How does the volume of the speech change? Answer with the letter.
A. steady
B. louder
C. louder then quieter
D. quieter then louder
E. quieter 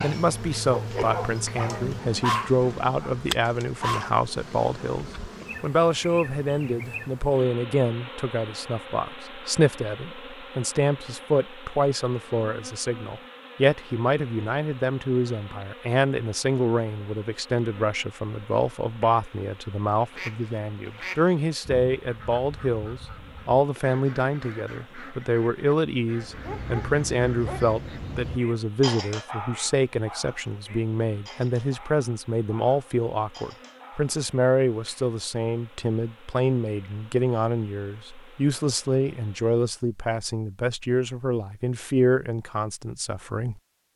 A.